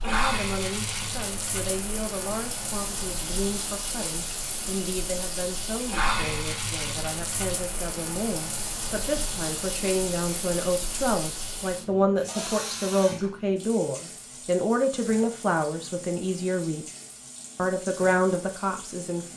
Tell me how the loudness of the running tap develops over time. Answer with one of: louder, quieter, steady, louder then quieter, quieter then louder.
quieter.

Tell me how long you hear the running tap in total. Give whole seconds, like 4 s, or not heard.
19 s.